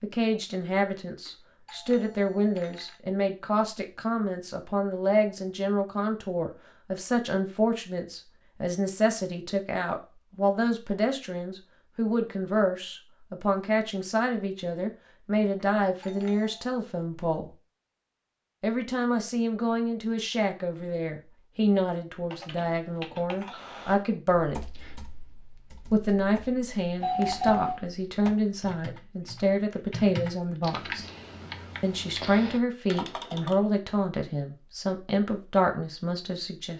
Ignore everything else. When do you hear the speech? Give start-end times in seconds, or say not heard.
0.0-17.5, 18.6-24.6, 25.9-31.1, 31.8-36.7.